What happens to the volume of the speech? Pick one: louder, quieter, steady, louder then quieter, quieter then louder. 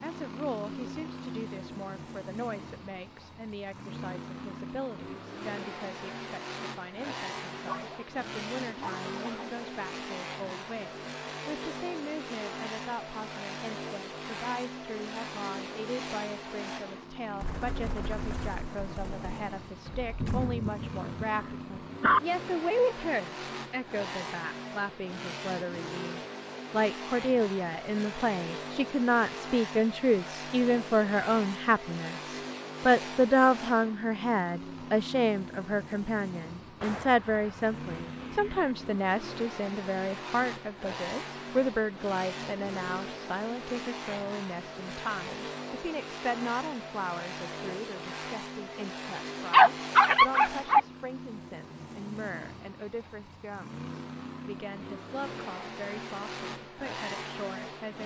louder then quieter.